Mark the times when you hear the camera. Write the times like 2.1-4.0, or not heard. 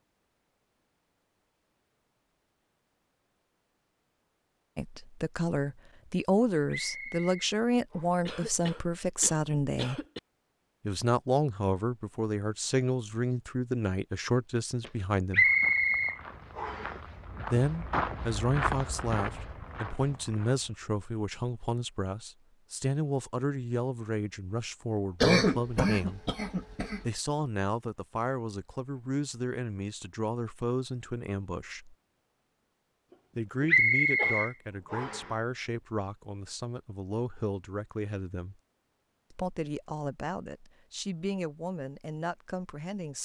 not heard.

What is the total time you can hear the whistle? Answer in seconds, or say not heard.
5 s.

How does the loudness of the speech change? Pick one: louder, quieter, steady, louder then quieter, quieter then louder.
quieter.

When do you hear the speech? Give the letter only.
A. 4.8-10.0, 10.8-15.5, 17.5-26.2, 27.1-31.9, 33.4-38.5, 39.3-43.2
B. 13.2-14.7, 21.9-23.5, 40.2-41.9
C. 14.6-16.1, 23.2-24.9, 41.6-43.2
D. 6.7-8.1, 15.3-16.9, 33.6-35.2
A.